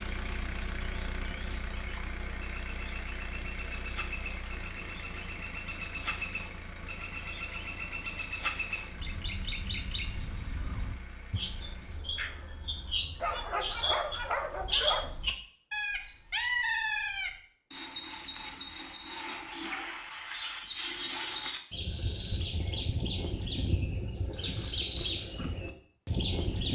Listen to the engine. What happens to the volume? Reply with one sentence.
The volume of the engine goes down.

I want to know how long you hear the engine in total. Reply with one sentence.
You can hear the engine for 13 seconds altogether.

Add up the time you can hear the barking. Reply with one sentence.
You can hear the barking for 2 seconds altogether.